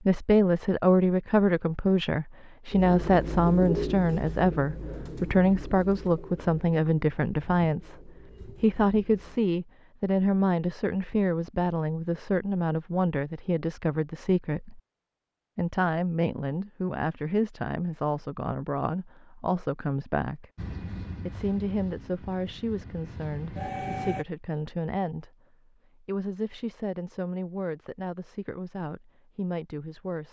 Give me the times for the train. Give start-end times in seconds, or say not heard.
20.6-24.2.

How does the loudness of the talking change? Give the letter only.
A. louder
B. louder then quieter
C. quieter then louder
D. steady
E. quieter
E.